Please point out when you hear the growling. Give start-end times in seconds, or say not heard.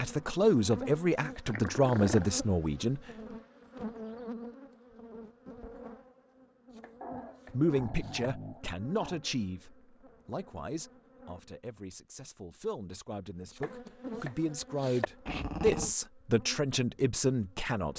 1.4-2.3, 7.0-9.2, 15.2-15.9.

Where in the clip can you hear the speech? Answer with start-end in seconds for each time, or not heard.
0.0-3.0, 7.5-17.9.